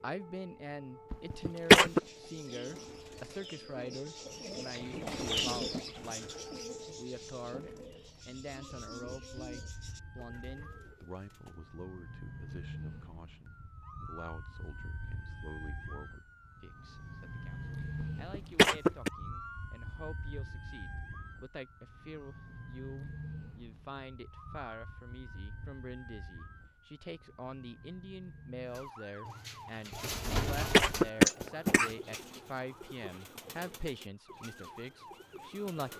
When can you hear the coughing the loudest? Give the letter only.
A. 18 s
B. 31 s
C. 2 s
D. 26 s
C.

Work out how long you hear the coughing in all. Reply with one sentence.
You can hear the coughing for 4 seconds altogether.